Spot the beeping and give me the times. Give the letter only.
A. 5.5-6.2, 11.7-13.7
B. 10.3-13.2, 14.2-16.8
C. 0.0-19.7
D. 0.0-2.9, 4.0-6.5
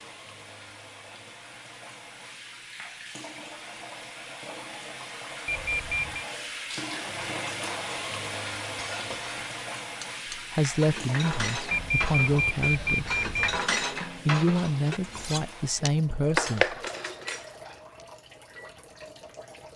A.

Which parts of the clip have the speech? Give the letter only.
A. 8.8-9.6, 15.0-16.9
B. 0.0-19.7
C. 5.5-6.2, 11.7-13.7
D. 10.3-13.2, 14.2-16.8
D.